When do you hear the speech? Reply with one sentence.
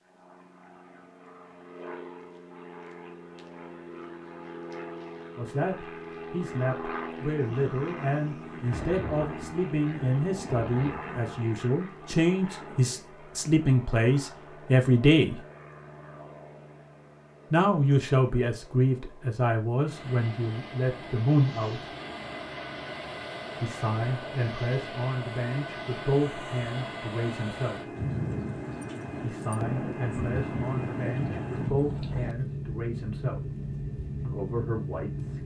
The speech can be heard from 5.3 to 15.4 s, from 17.5 to 21.9 s, from 23.6 to 27.9 s, from 29.2 to 33.5 s and from 34.2 to 35.4 s.